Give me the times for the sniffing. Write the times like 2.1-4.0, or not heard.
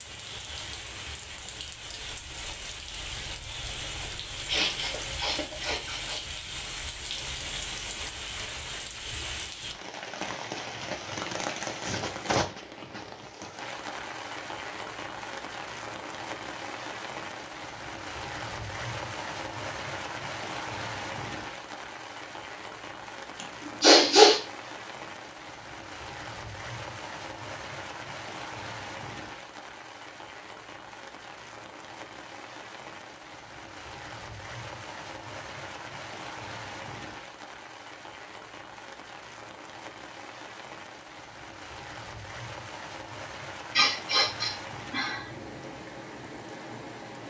4.5-6.2, 23.4-24.4, 43.8-45.2.